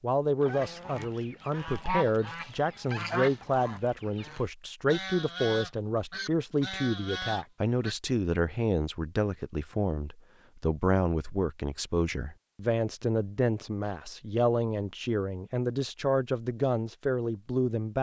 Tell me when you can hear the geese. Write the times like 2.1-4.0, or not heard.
0.4-8.0.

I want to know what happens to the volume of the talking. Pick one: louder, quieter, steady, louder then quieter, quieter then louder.
steady.